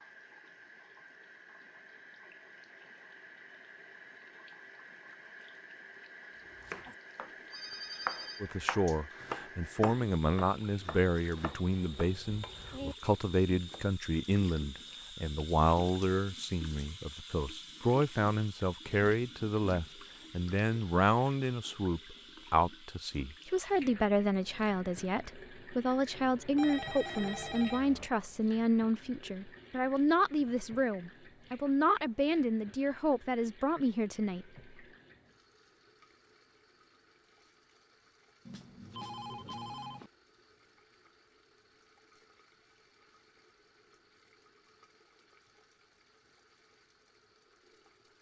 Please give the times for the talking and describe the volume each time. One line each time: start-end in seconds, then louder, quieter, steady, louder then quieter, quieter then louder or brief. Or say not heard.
8.4-34.5 steady.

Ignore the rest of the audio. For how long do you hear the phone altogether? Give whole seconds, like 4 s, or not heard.
5 s.